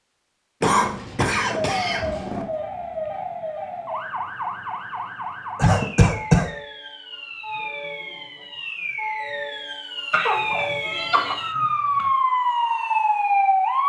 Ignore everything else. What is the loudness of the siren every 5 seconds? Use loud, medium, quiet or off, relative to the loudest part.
medium, medium, loud.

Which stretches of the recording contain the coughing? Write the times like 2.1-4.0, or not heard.
0.6-2.5, 5.5-6.5, 10.1-12.1.